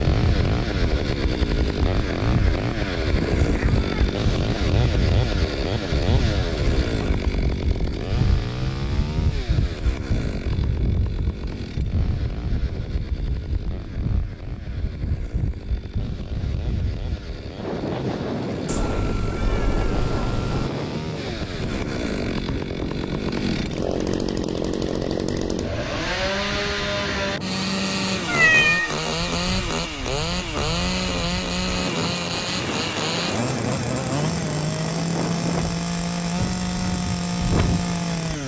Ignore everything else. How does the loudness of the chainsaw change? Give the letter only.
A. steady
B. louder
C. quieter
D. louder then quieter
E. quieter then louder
E.